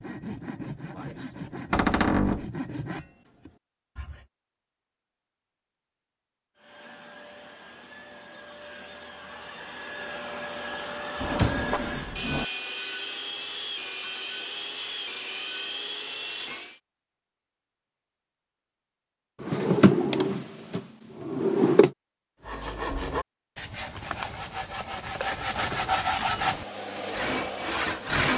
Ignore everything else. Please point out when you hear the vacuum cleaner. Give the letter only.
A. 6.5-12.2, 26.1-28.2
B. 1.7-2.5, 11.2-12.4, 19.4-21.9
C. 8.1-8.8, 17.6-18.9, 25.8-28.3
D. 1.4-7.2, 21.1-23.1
A.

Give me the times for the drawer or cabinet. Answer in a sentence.
You can hear the drawer or cabinet from 1.7 to 2.5 s, from 11.2 to 12.4 s and from 19.4 to 21.9 s.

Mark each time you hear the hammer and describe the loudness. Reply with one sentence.
The hammer can't be heard in this clip.